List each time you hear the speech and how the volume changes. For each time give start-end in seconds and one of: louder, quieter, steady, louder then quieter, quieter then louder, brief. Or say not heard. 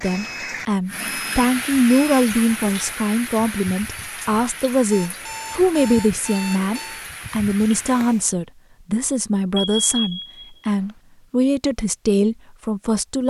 0.0-13.2 steady.